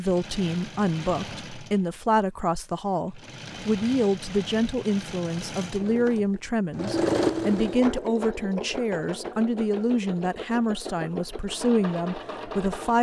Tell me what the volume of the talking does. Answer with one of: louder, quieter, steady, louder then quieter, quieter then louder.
steady.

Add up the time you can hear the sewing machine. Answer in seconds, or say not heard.
12 s.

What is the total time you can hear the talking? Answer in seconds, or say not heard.
13 s.